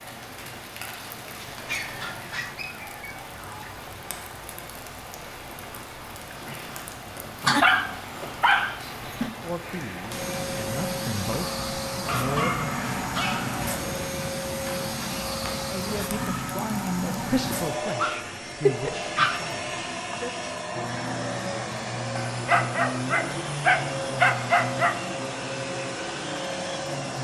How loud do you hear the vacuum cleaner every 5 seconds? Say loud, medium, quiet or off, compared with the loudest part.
off, off, loud, loud, loud, loud.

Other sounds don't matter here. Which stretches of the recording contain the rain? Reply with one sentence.
You can hear the rain from 0.0 to 17.4 s.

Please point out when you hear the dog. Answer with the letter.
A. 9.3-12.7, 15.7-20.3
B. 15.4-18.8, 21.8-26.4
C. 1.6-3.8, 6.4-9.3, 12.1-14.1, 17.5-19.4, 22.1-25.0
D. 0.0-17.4
C.